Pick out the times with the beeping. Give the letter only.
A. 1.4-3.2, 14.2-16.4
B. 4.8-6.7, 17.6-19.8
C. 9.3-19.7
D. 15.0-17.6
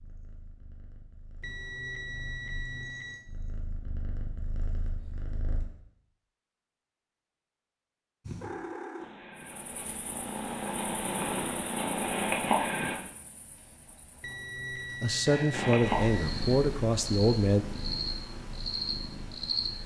A.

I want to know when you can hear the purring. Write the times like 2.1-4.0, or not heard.
0.0-5.7, 8.2-12.9, 15.5-19.8.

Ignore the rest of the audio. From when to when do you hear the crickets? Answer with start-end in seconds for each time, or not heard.
9.3-19.7.